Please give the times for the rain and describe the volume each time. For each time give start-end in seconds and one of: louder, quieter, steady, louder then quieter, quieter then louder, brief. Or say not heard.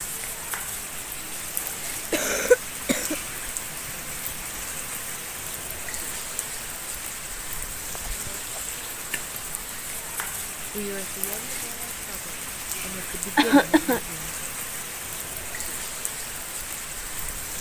0.0-17.5 steady.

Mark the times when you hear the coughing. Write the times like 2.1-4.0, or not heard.
2.1-3.1, 8.0-8.7, 13.3-14.0.